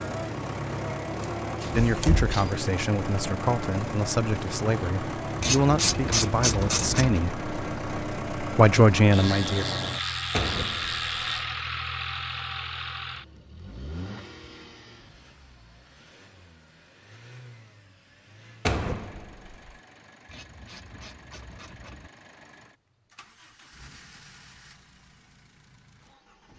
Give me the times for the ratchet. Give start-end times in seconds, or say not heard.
5.4-7.2, 9.1-11.4, 20.2-22.1.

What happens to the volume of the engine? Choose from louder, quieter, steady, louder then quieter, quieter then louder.
quieter.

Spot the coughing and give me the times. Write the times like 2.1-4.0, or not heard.
not heard.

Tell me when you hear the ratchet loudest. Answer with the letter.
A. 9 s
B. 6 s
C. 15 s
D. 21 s
B.